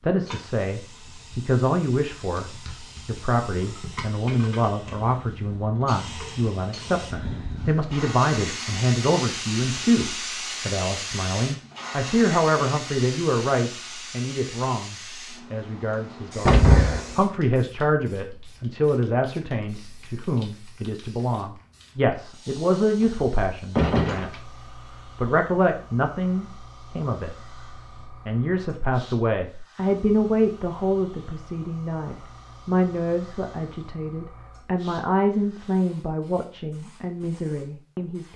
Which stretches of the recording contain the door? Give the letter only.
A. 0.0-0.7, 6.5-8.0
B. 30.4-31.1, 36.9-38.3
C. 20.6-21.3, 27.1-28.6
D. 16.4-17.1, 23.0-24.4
D.